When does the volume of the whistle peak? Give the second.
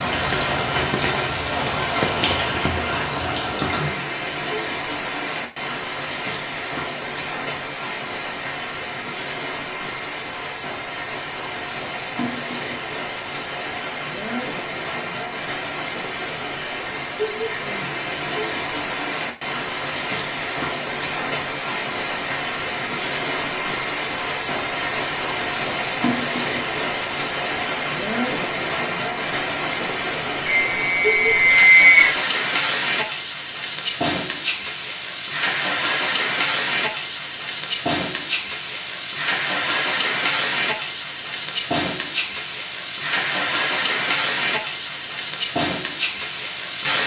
32 s.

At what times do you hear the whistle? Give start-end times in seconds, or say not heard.
30.4-32.1.